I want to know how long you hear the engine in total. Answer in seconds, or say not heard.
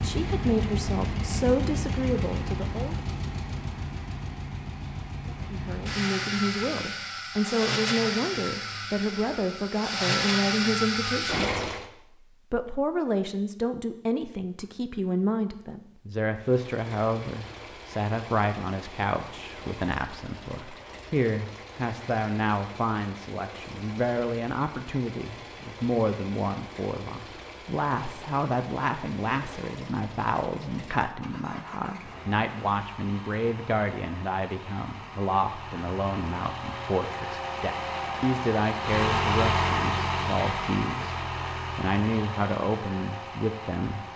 40 s.